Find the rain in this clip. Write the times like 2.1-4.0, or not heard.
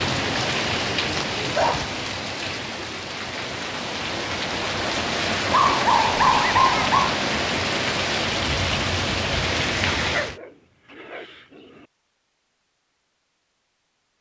0.0-10.4.